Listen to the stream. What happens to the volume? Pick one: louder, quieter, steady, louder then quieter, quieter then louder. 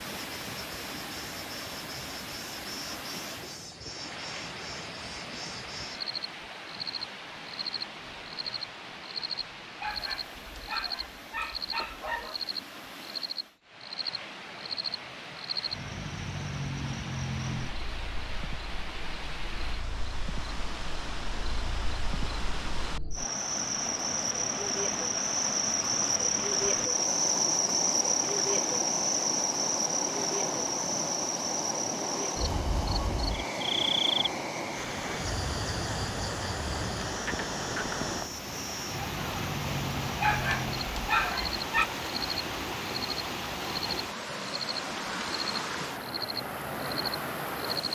louder.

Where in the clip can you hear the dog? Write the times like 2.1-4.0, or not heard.
9.8-12.4, 40.2-41.9.